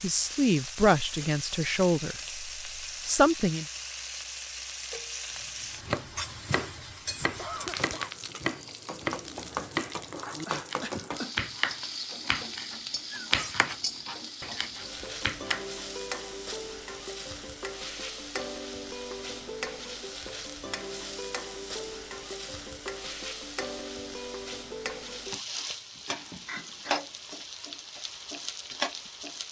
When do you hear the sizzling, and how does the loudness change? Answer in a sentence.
You can hear the sizzling from 0.0 to 29.4 s, at a steady volume.